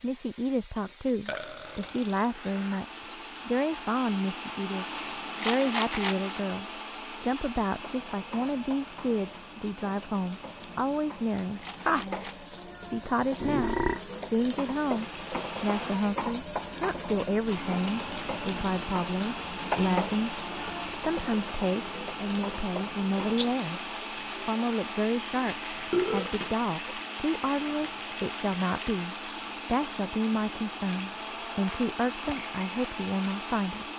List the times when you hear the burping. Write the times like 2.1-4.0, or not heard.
1.2-2.8, 13.4-14.0, 25.6-26.6.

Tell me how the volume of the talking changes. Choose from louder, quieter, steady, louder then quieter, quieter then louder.
steady.